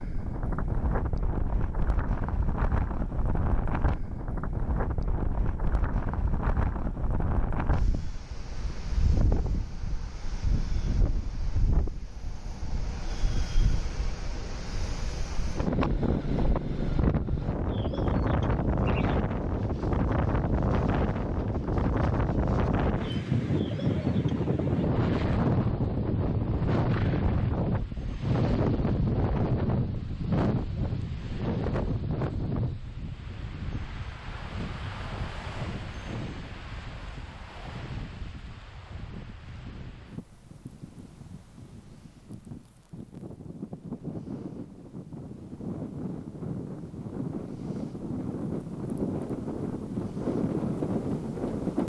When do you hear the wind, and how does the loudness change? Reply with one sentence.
The wind can be heard from 0.0 to 51.8 s, getting louder then quieter.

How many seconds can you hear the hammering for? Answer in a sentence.
The hammering can't be heard in this clip.